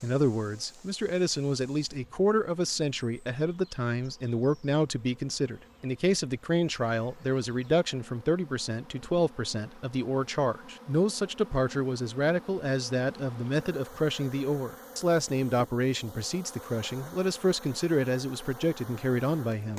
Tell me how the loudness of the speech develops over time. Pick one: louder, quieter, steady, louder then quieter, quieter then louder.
steady.